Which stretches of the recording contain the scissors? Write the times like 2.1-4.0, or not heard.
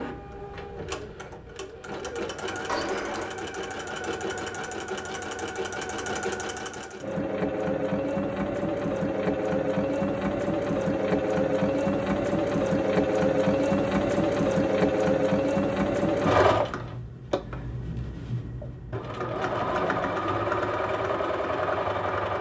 2.6-3.3.